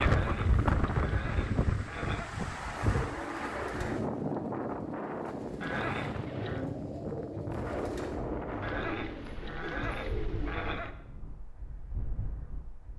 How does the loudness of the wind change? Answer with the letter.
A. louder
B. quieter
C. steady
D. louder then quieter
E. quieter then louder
B.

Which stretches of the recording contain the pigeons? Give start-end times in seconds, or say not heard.
2.7-10.9.